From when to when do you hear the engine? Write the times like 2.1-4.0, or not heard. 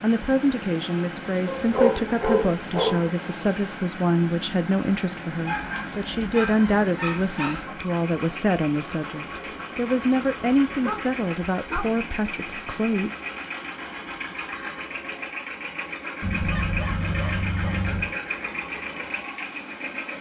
0.0-20.1.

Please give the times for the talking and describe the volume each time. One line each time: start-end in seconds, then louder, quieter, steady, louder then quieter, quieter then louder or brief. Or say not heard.
0.0-13.1 steady.